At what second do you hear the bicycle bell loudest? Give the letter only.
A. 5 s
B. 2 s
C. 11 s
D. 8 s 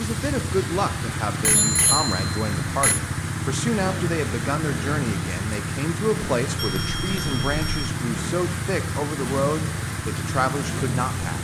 B.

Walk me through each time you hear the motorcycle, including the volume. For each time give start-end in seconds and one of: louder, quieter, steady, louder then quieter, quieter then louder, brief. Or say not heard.
0.0-11.3 steady.